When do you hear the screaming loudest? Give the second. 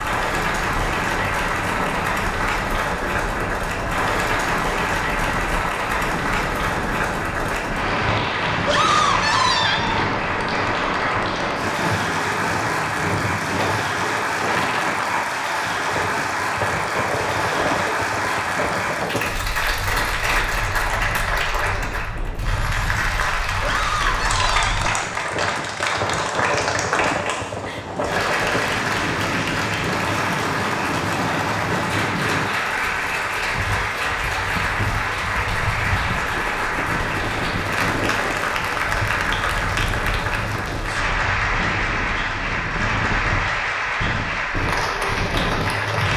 9 s.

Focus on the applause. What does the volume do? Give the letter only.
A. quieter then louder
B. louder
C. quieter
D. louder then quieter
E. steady
E.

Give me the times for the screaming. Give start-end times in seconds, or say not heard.
8.7-10.0, 23.6-24.8.